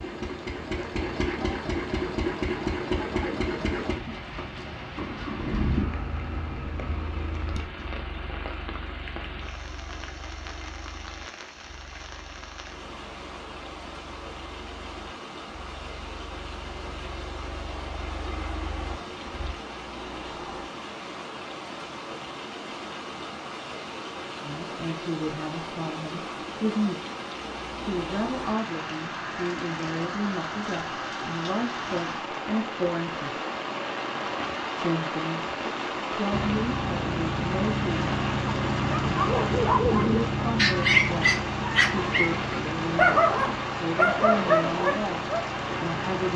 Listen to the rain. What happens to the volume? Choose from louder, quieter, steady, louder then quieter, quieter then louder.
louder.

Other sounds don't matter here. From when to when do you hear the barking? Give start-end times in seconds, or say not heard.
39.0-45.5.